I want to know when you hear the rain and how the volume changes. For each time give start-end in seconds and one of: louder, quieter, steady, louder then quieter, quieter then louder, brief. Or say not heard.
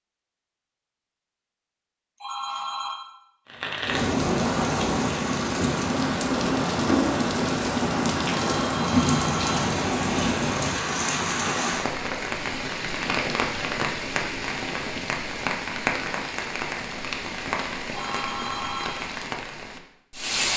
3.5-20.5 quieter.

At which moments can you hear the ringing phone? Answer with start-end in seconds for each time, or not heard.
2.1-3.0, 8.5-9.7, 17.9-19.0.